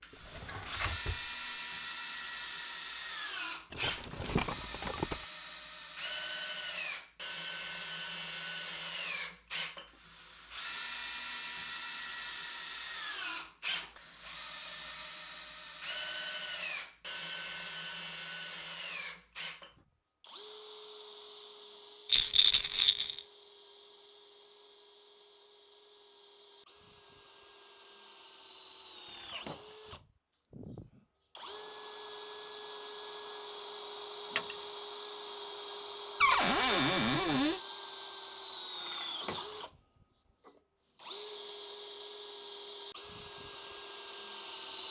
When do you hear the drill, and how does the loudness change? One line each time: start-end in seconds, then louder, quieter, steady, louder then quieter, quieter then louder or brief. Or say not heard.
0.0-44.8 quieter then louder.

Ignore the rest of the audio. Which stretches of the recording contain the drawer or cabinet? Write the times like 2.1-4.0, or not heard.
0.1-1.2, 36.2-37.6.